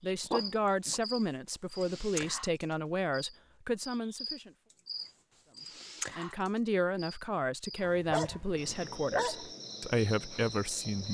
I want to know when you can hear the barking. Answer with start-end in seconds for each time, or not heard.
0.2-1.0, 7.8-9.4.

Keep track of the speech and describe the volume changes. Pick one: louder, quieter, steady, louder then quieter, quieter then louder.
steady.